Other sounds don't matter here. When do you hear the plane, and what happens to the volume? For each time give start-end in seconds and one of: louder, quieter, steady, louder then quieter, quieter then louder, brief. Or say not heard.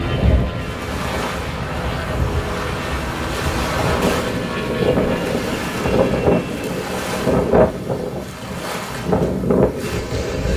0.0-7.2 steady.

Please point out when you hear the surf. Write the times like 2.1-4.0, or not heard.
0.0-10.5.